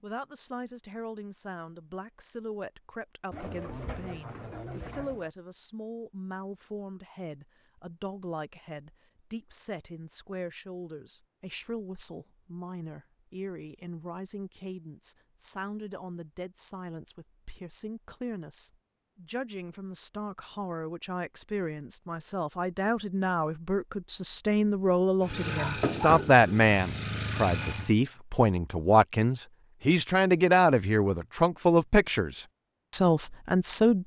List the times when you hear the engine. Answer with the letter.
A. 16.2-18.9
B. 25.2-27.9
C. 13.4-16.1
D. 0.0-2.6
B.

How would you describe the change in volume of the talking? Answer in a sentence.
The volume of the talking goes up.